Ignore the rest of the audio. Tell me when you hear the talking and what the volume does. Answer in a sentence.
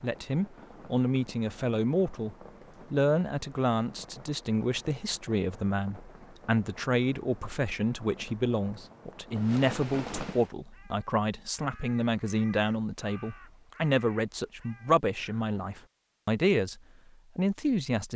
The talking can be heard from 0.0 to 18.1 s, at a steady volume.